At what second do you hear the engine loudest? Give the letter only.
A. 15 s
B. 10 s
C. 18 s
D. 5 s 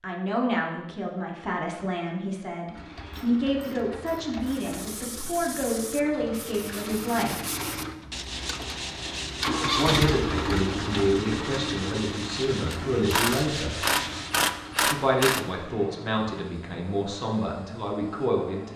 B.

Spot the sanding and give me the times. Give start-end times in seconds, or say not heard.
4.4-14.6.